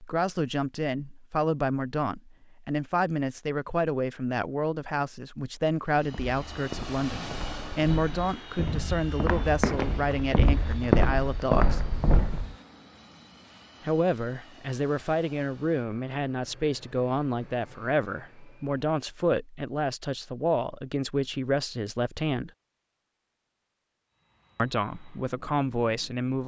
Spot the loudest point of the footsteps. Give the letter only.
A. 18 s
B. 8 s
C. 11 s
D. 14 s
C.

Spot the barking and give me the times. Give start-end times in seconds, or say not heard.
not heard.